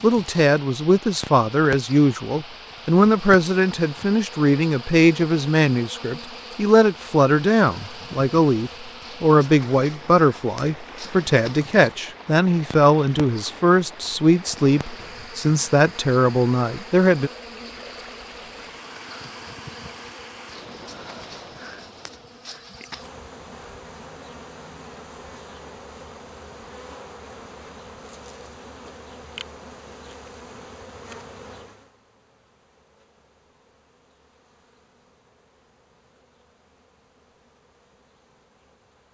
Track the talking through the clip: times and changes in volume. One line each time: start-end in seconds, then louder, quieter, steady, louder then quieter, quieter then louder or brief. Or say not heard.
0.0-17.3 steady.